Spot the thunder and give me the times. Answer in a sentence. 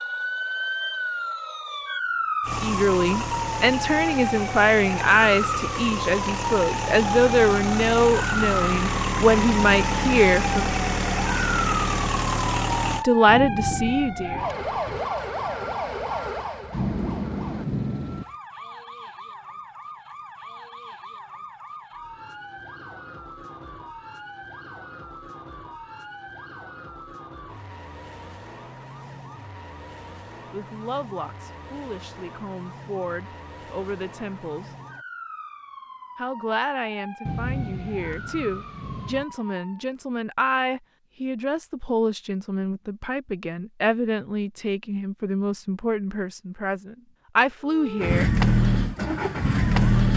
The thunder can be heard from 13.2 to 15.1 s, from 16.7 to 18.2 s and from 37.2 to 39.2 s.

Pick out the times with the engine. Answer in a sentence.
The engine can be heard from 2.4 to 13.1 s and from 48.0 to 50.1 s.